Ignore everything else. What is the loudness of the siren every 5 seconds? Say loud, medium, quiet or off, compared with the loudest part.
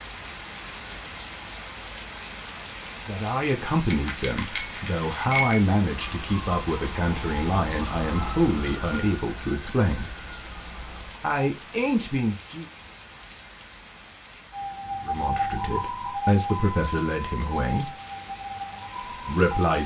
off, medium, medium, loud.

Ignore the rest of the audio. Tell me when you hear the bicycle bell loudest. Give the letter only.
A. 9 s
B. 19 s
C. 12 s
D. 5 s
D.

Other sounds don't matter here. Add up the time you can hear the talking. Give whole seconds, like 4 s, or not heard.
12 s.